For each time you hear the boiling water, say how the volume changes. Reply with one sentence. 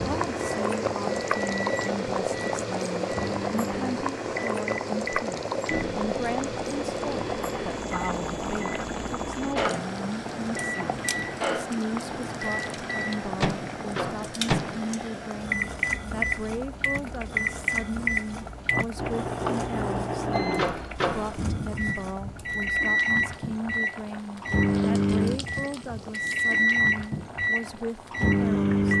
The boiling water can be heard from 0.0 to 28.9 s, getting quieter.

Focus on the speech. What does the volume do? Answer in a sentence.
The loudness of the speech stays about the same.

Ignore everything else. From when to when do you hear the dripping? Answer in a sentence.
You can't hear the dripping here.